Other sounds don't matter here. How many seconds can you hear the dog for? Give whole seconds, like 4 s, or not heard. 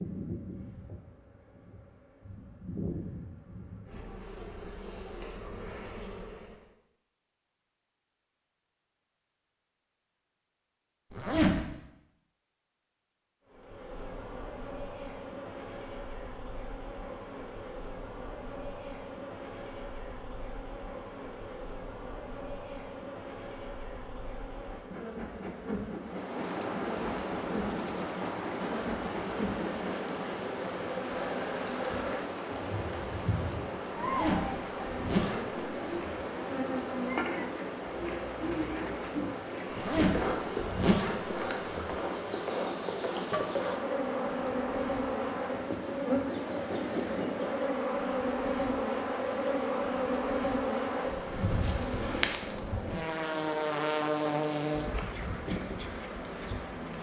not heard.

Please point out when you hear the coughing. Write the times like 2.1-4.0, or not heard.
not heard.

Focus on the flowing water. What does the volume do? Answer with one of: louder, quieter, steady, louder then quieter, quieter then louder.
quieter.